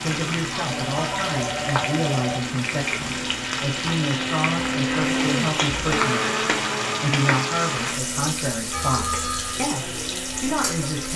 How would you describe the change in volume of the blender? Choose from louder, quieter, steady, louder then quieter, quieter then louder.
louder then quieter.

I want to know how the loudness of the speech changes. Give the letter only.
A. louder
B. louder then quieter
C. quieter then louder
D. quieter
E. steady
E.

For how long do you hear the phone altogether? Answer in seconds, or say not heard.
3 s.